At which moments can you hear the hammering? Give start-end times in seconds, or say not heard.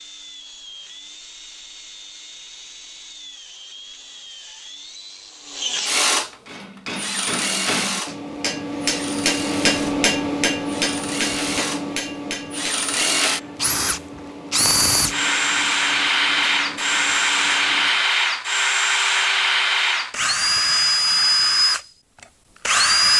6.5-18.1.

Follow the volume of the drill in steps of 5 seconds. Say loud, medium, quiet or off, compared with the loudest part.
quiet, medium, medium, loud, loud.